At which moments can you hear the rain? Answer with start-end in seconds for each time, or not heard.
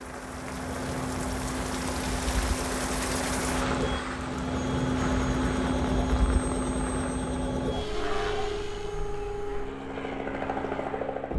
0.0-11.3.